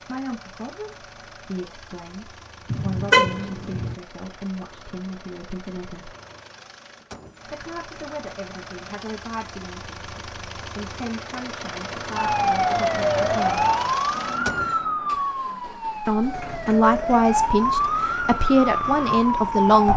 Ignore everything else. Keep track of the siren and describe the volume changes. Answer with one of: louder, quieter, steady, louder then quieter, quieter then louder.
quieter then louder.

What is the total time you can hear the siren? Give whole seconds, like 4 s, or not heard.
8 s.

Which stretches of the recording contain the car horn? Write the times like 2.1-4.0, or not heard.
2.7-4.0.